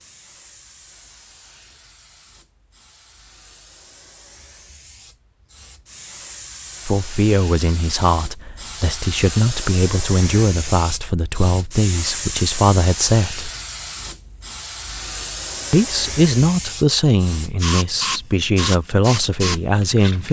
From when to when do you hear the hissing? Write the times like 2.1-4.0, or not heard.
0.0-20.2.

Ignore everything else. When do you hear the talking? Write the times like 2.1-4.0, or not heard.
6.8-13.5, 15.7-20.2.